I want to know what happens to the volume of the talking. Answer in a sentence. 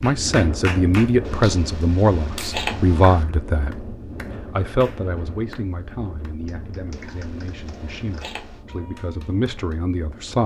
The loudness of the talking goes down, then up.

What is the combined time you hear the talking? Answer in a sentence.
You can hear the talking for 10 seconds altogether.